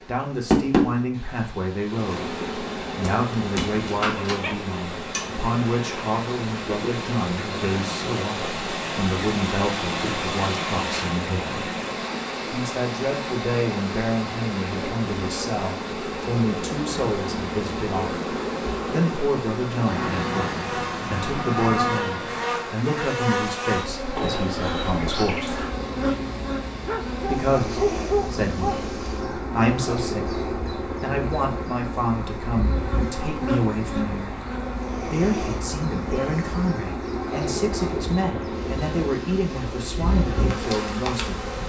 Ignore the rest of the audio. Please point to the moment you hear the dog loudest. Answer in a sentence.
The loudest moment of the dog is at 28 seconds.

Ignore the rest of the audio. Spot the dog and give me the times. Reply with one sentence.
The dog can be heard from 4.1 to 4.5 s and from 26.9 to 28.8 s.